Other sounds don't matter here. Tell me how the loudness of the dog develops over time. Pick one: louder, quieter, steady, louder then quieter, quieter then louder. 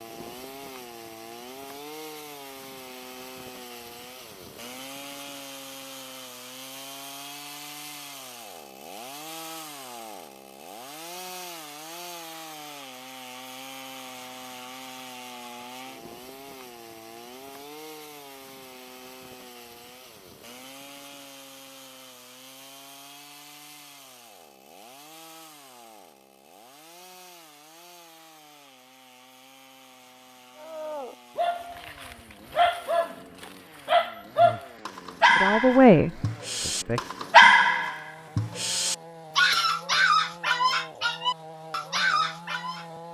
louder then quieter.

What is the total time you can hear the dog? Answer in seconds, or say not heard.
12 s.